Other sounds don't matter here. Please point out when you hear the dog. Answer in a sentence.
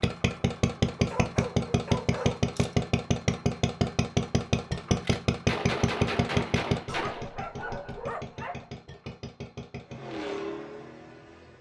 The dog can be heard from 0.9 to 2.8 s and from 6.8 to 8.7 s.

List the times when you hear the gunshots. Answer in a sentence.
The gunshots can be heard from 4.8 to 7.3 s.